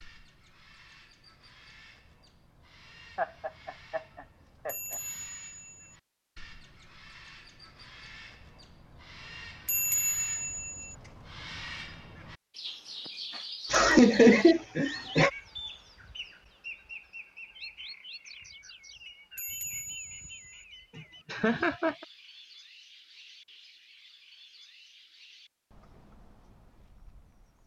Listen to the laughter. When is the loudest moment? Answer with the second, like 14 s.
14 s.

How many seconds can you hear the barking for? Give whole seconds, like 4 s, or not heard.
not heard.